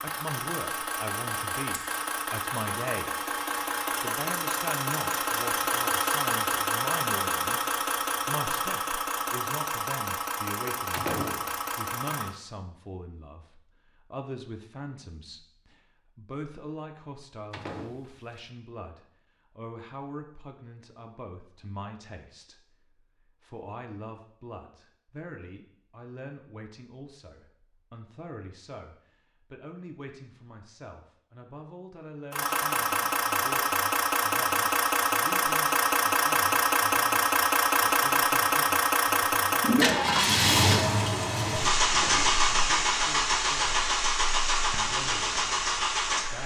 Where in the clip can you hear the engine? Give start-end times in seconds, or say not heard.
0.0-12.3, 32.3-46.4.